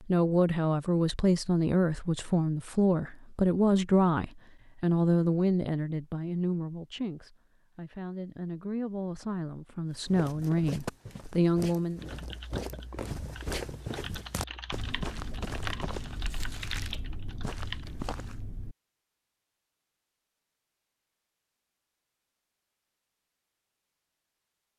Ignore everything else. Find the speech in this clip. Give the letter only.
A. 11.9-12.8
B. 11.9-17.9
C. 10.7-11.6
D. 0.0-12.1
D.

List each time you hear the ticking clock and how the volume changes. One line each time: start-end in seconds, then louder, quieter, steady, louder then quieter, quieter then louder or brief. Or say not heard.
not heard.